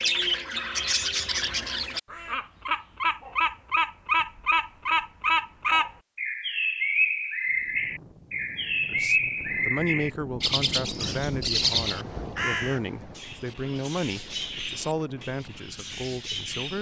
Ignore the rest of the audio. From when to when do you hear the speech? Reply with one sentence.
You can hear the speech from 8.9 to 16.7 s.